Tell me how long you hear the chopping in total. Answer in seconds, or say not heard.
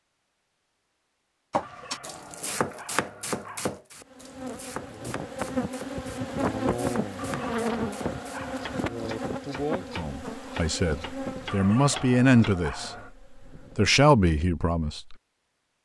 11 s.